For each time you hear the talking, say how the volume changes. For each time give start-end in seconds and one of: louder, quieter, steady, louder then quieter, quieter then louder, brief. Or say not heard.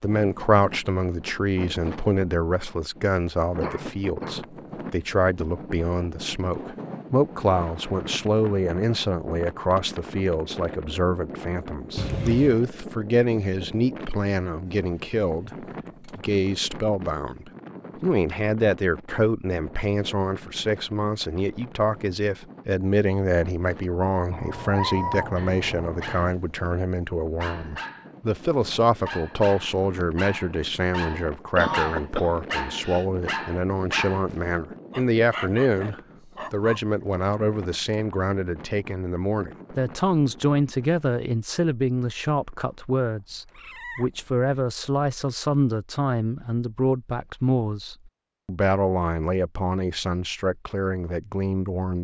0.0-51.9 steady.